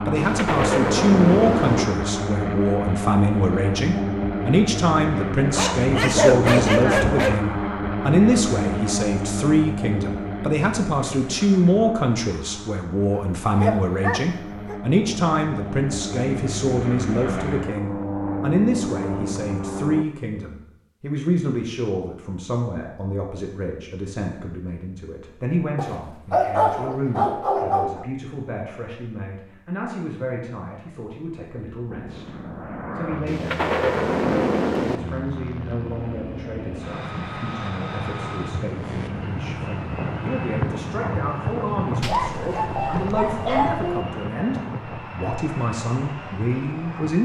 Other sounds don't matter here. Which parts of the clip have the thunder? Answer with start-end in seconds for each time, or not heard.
0.1-1.9, 33.2-35.0.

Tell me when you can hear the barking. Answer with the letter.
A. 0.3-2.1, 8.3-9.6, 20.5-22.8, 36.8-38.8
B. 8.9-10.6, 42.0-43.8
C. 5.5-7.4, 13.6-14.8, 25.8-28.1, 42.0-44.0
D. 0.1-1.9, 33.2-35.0
C.